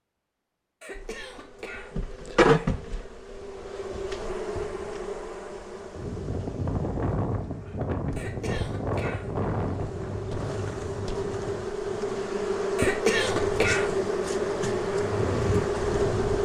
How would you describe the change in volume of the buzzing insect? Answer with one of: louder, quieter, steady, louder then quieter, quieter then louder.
quieter then louder.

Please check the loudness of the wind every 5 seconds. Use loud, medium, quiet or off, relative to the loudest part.
off, loud, medium, loud.